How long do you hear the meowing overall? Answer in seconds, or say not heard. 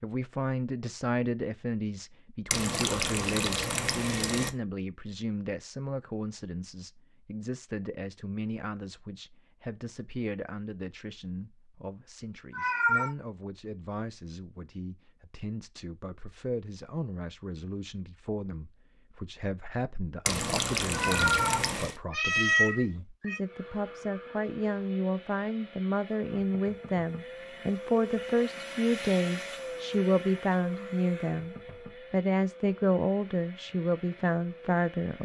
3 s.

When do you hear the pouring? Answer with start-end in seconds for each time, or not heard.
2.5-4.5, 20.2-21.9.